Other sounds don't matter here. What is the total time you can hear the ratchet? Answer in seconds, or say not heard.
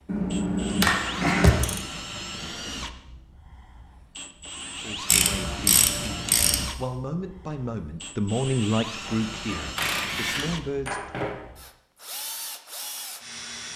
5 s.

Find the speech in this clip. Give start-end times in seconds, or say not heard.
4.8-11.2.